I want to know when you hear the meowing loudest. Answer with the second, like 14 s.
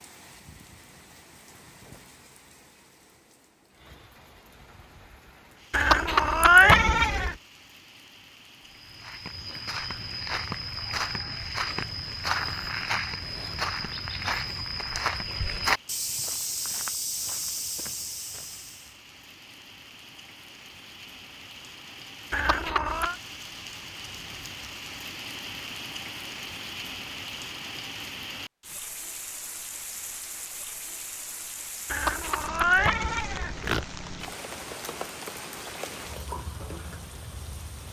7 s.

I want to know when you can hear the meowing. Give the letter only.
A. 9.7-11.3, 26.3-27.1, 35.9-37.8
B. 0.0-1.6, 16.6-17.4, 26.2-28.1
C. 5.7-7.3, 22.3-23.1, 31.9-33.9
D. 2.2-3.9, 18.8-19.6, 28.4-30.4
C.